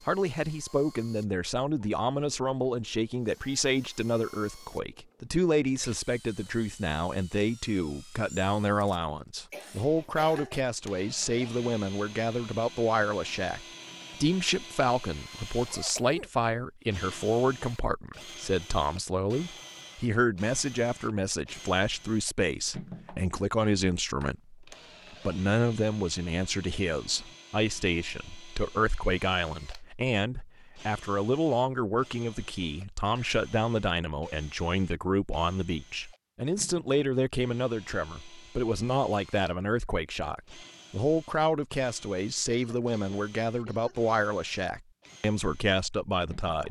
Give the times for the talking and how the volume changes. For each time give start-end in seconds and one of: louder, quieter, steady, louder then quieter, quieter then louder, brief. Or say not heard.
0.1-46.6 steady.